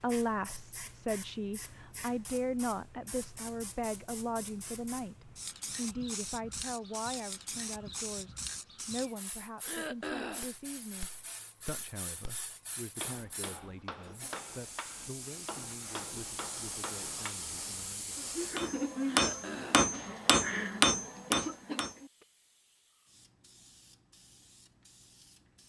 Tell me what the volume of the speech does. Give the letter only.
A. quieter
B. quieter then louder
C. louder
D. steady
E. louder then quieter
A.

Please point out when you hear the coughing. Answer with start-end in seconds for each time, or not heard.
9.6-10.6, 19.1-19.9.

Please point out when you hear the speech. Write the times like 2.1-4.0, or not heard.
0.0-18.2.